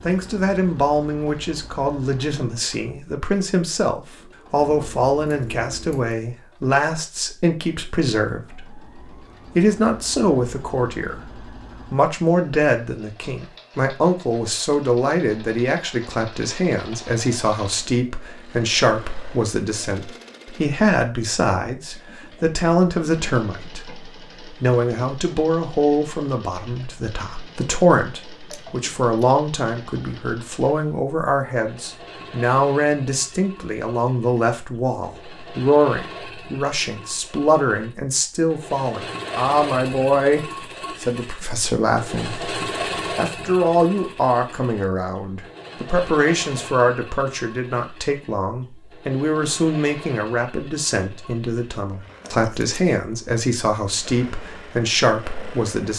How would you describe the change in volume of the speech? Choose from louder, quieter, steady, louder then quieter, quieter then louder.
steady.